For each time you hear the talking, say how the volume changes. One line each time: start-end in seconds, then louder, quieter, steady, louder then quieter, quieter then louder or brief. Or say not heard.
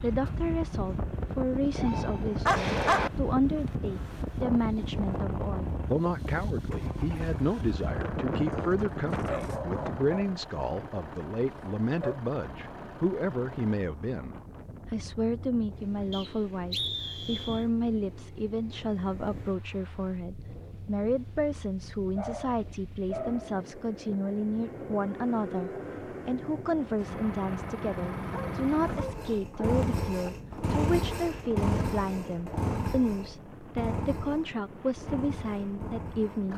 0.0-36.5 steady.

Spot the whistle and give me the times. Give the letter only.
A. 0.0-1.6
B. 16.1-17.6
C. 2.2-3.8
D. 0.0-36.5
B.